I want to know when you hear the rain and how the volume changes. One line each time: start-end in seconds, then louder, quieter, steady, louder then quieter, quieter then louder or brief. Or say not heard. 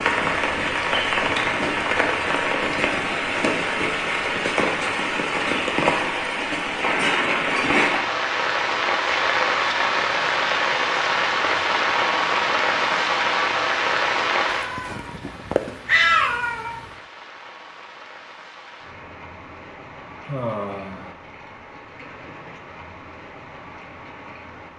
0.0-24.7 quieter.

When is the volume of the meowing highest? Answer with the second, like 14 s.
16 s.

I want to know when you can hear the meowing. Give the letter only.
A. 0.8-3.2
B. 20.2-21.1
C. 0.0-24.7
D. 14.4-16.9
D.